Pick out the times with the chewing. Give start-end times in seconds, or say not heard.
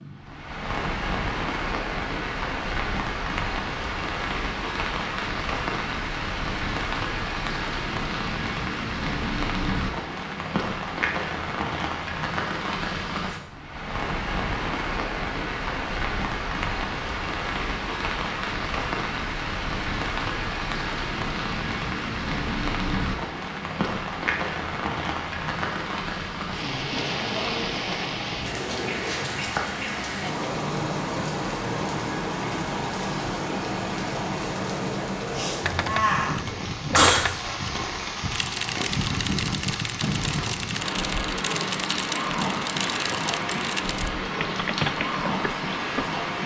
not heard.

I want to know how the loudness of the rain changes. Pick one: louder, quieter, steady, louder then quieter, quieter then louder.
steady.